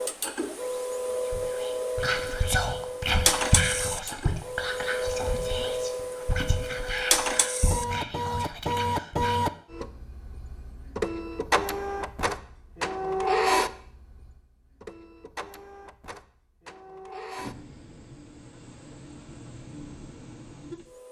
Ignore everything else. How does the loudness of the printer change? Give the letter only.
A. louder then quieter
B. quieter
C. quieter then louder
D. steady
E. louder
B.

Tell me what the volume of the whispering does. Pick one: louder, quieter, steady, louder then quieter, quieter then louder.
quieter.